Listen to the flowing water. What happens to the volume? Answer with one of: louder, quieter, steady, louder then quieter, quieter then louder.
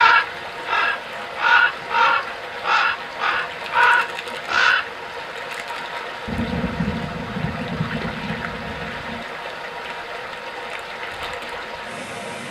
steady.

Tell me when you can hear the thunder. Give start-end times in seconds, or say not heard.
6.2-9.2.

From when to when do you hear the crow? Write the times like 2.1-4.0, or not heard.
0.0-4.8.